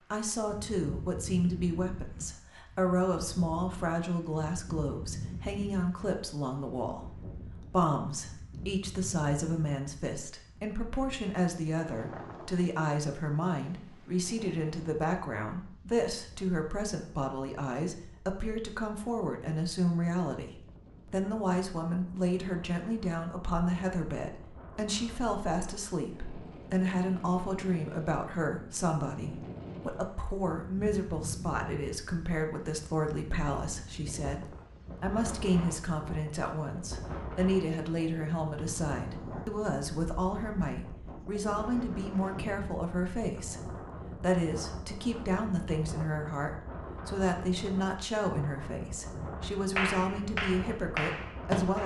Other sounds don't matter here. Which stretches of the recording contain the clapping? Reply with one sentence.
The clapping can be heard from 49.8 to 51.8 s.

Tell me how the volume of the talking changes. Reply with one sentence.
The loudness of the talking stays about the same.